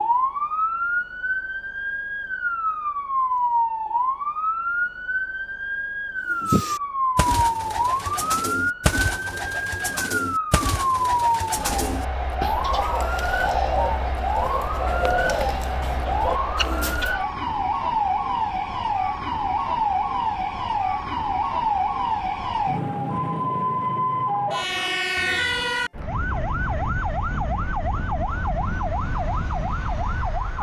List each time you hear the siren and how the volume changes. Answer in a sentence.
The siren can be heard from 0.0 to 30.5 s, at a steady volume.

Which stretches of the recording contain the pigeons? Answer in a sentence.
You can hear the pigeons from 6.3 to 17.1 s.